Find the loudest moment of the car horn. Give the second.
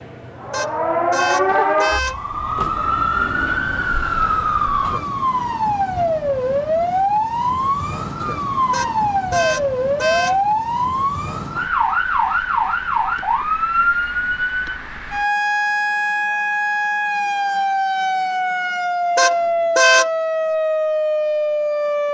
20 s.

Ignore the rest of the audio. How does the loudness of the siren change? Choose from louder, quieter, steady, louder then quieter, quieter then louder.
steady.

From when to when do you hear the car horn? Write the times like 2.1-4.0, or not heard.
0.5-2.2, 8.7-10.4, 19.1-20.1.